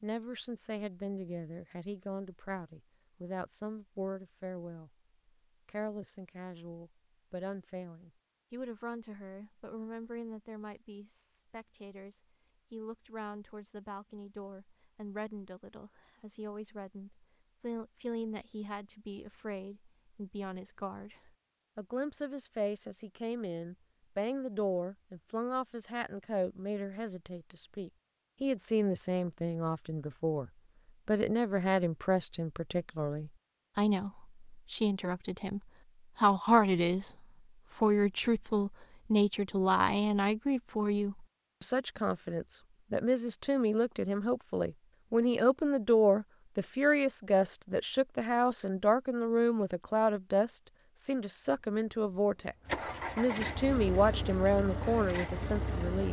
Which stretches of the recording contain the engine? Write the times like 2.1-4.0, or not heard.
51.4-56.0.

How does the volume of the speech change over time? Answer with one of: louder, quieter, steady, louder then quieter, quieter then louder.
louder.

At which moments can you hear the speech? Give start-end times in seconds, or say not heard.
0.0-4.9, 5.7-37.1, 37.8-56.0.